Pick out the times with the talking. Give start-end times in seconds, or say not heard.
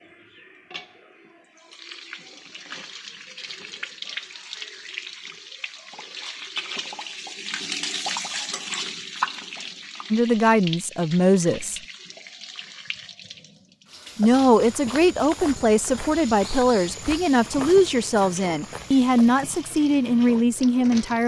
10.1-11.8, 14.2-21.2.